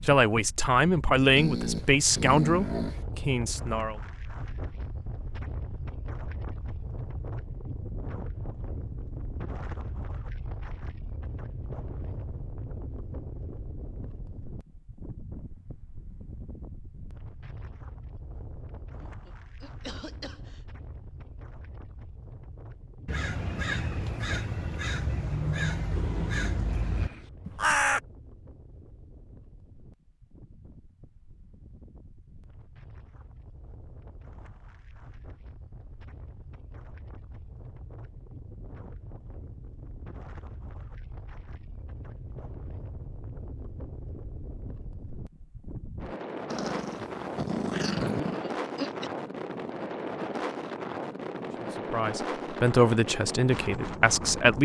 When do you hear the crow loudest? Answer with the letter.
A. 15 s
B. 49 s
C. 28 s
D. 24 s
C.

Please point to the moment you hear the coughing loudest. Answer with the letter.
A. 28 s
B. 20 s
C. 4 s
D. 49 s
D.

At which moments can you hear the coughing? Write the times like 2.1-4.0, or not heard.
18.9-20.6, 48.1-49.1.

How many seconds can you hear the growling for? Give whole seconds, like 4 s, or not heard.
5 s.